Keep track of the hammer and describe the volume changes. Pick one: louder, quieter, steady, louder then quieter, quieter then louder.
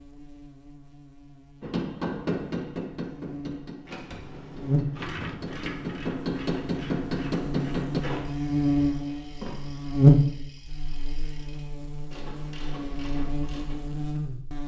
quieter then louder.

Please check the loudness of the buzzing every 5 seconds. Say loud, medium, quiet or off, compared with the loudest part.
medium, medium, loud.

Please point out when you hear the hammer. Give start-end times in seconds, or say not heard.
1.6-8.1.